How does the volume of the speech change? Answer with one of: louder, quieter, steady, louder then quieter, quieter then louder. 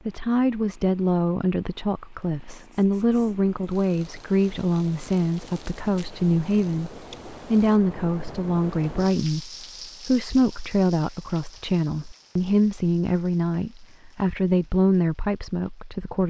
steady.